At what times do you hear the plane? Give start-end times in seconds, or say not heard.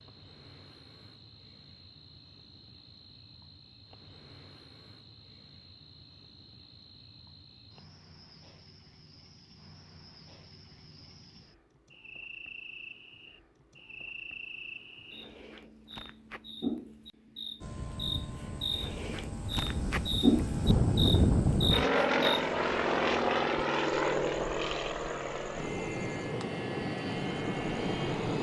17.6-28.3.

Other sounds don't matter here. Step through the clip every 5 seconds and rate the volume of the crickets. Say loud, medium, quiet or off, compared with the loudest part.
quiet, quiet, quiet, medium, loud, quiet.